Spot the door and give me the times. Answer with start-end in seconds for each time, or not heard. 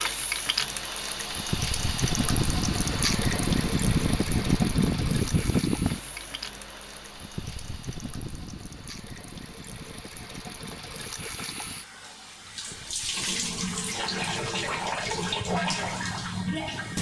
not heard.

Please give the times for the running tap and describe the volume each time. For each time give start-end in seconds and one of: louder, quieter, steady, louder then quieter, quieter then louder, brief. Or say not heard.
0.0-16.9 quieter then louder.